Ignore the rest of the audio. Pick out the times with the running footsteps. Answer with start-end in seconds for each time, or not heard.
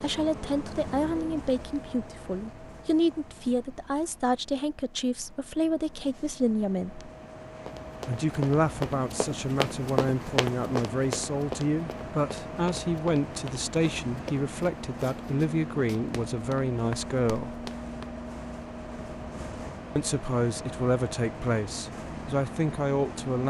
7.7-18.1.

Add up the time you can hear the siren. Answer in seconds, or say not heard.
not heard.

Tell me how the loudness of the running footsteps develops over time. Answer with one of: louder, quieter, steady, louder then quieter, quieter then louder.
quieter.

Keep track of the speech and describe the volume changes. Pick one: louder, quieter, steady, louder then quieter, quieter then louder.
steady.